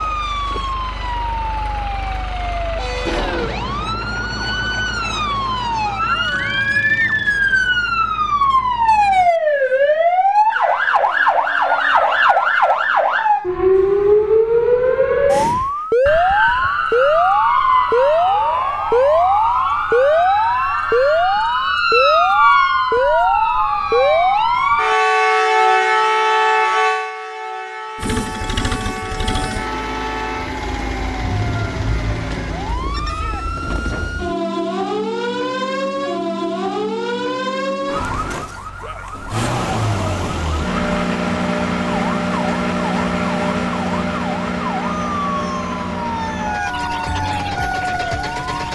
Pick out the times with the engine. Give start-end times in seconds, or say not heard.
0.0-9.3, 27.9-32.8, 39.2-48.7.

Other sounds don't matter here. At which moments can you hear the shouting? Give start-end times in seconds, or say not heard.
33.0-33.5.